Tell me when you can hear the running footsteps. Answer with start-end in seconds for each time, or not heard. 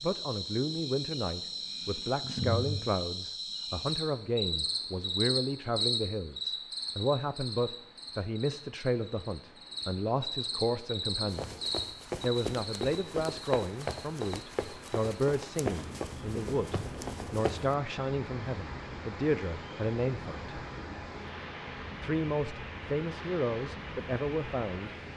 11.2-17.8.